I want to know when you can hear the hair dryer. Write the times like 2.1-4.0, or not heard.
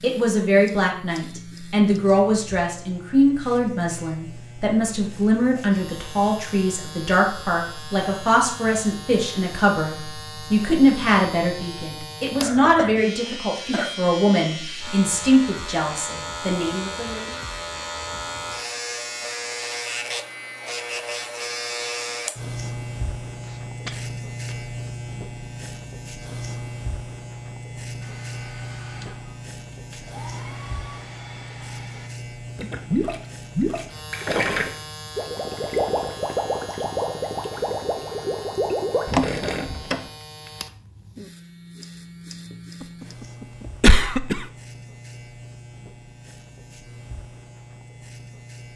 28.0-32.1.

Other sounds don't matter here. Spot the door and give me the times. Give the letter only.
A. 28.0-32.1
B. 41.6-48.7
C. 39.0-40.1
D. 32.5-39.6
C.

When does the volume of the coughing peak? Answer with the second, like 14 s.
44 s.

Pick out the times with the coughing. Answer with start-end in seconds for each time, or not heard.
12.4-14.2, 23.4-24.6, 42.8-44.5.